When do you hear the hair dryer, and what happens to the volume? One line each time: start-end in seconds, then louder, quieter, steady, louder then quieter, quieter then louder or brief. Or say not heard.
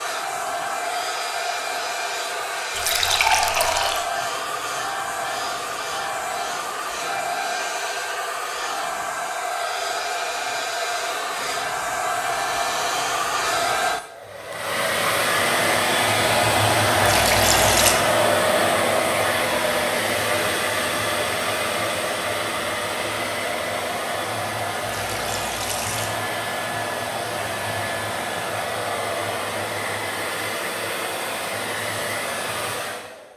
0.0-33.3 louder then quieter.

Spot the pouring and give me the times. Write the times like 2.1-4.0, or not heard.
2.8-4.0, 17.0-18.0, 24.9-26.2.